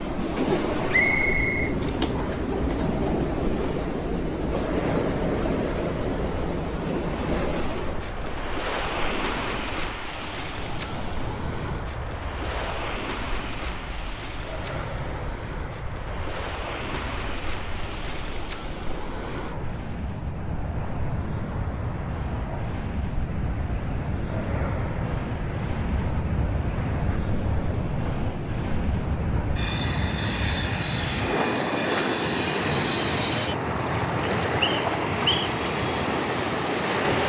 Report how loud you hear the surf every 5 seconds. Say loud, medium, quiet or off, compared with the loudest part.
loud, loud, medium, medium, medium, loud, loud, loud.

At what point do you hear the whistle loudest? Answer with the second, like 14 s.
1 s.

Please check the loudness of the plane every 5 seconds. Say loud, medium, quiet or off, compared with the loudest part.
medium, medium, medium, medium, medium, medium, loud, loud.